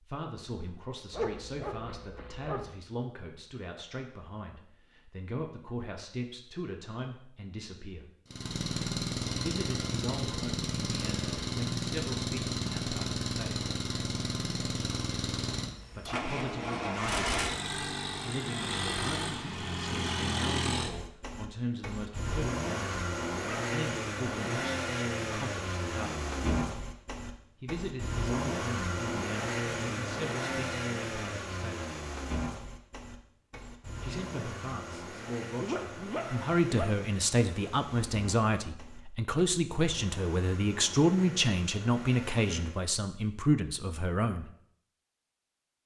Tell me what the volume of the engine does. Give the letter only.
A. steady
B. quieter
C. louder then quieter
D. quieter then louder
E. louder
B.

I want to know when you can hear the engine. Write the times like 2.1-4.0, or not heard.
8.3-42.9.